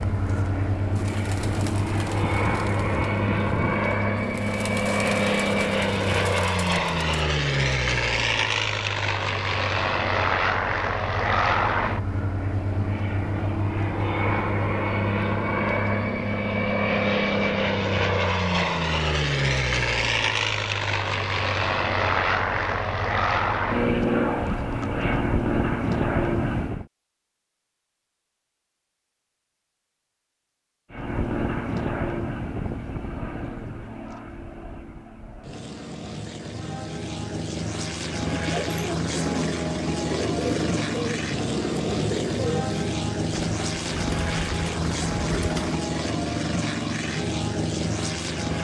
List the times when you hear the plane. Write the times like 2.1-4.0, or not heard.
0.0-26.9, 30.9-48.5.